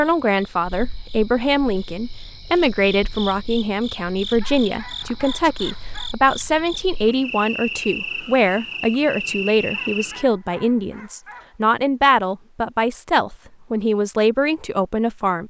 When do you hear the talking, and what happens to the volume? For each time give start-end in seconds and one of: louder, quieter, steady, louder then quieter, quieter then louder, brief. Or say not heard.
0.0-15.4 steady.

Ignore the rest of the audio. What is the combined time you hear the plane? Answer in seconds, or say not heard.
not heard.